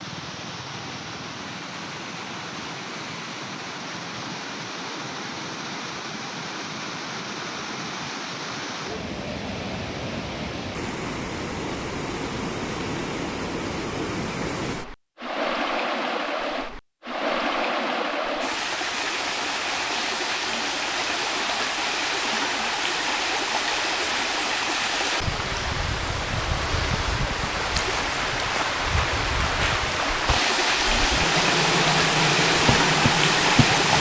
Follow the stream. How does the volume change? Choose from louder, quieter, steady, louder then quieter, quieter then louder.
louder.